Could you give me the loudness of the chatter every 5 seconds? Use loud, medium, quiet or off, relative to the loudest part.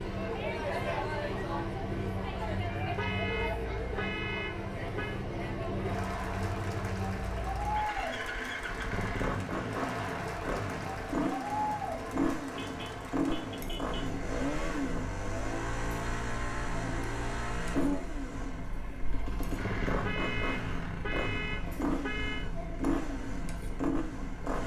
loud, loud, loud, medium, medium.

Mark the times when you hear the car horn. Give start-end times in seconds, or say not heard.
3.0-5.2, 12.6-14.1, 20.0-22.5.